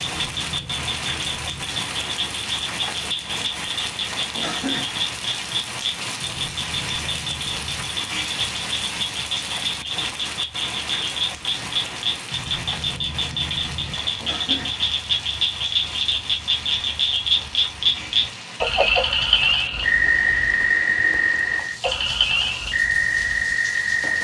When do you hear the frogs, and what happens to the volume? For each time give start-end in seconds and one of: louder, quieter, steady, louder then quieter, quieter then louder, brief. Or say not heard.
0.0-24.1 louder.